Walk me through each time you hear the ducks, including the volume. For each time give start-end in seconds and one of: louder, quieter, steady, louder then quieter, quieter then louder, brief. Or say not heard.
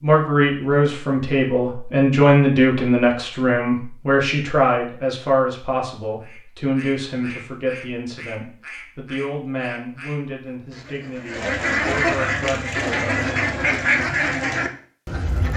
6.2-15.5 louder.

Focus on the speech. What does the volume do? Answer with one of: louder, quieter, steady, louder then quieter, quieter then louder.
quieter.